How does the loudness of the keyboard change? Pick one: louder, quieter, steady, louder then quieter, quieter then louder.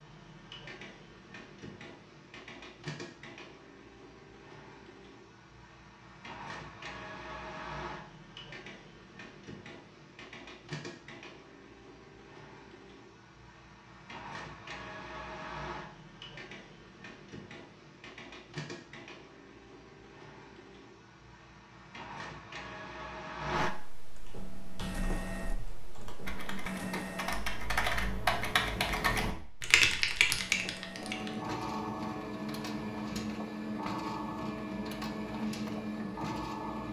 louder.